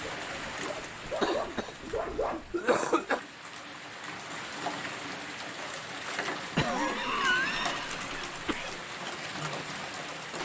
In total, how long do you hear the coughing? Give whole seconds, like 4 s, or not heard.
4 s.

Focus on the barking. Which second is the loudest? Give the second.
2 s.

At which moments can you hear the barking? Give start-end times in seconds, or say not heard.
0.0-2.5.